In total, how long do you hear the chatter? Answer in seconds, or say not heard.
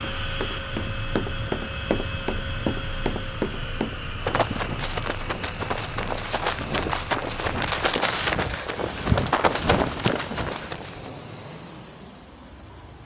not heard.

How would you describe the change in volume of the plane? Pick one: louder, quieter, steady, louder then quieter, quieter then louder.
quieter.